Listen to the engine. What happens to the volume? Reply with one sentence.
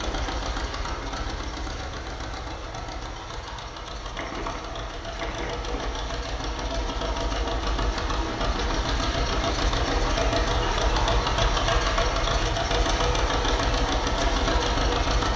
The volume of the engine goes up.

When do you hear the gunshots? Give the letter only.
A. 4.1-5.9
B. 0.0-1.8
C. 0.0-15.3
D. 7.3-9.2
A.